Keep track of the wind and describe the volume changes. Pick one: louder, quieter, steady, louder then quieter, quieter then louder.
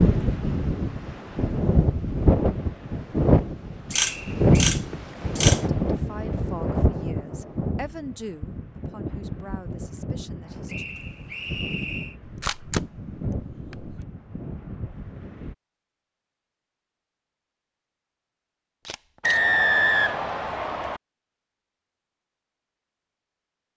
quieter.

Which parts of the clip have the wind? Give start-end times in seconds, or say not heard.
0.0-15.6.